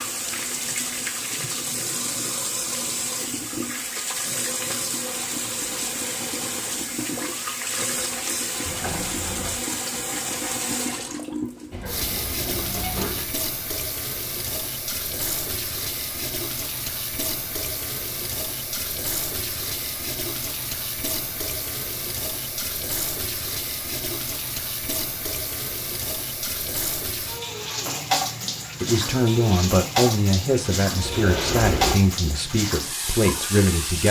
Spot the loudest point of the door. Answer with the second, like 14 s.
32 s.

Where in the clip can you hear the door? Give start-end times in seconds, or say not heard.
8.7-9.7, 11.7-13.2, 31.0-32.0.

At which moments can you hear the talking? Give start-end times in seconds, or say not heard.
28.8-34.0.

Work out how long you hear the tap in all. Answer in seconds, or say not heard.
34 s.